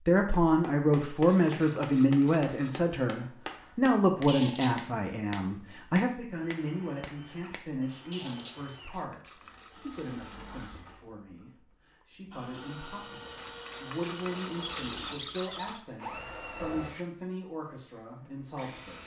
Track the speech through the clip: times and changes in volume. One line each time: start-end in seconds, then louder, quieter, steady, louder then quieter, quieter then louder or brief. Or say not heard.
0.0-19.0 quieter.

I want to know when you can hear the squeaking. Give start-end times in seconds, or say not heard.
4.2-4.8, 8.1-8.6, 14.6-15.8.